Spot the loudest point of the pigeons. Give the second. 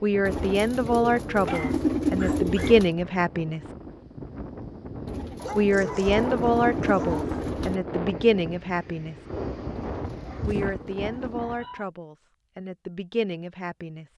2 s.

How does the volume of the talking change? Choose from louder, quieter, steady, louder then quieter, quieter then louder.
quieter.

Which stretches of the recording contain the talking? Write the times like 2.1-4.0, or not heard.
0.0-3.6, 5.5-9.2, 10.4-14.1.